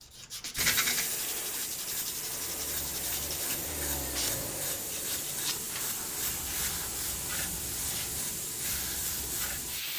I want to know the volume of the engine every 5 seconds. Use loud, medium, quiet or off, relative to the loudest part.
loud, medium.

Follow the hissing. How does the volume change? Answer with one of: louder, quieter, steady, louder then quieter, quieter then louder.
steady.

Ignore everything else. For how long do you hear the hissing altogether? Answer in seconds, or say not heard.
10 s.